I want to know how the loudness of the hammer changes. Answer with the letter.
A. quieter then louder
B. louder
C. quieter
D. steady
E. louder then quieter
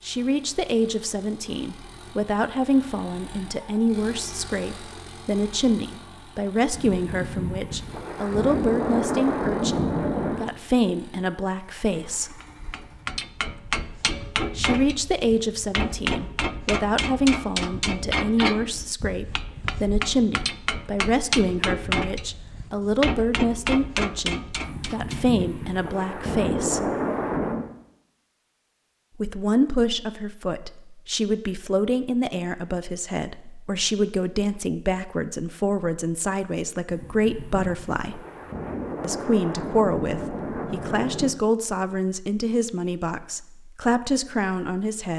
D.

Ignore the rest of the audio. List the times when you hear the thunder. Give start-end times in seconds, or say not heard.
6.7-10.4, 24.6-27.7, 36.9-41.4.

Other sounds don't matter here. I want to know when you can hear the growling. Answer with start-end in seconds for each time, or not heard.
not heard.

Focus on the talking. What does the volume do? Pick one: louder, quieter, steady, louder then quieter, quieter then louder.
steady.